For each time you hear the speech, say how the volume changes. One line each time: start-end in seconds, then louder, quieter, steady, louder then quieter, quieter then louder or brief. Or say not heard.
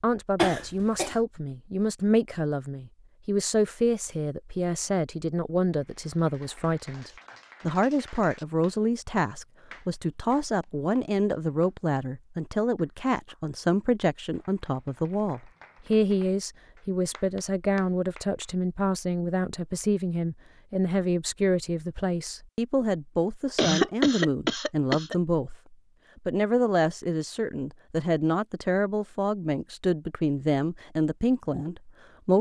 0.0-32.3 steady.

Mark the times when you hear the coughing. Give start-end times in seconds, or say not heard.
0.3-1.1, 23.6-25.1.